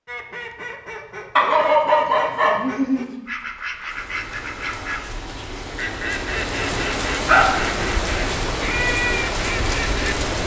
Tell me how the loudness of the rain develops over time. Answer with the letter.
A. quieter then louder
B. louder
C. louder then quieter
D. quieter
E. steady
B.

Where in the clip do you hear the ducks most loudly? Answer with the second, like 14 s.
9 s.